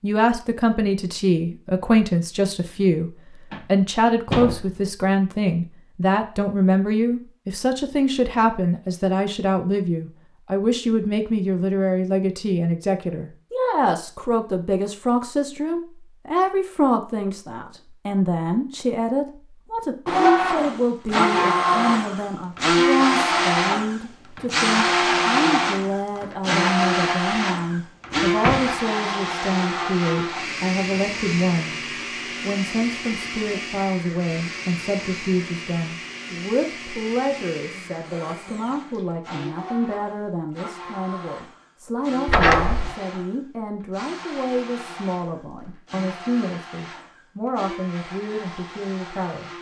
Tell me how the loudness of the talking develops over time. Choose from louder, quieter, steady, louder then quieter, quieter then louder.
quieter.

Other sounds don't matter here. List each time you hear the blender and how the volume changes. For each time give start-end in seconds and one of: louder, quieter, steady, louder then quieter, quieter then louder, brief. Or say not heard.
20.1-49.5 quieter.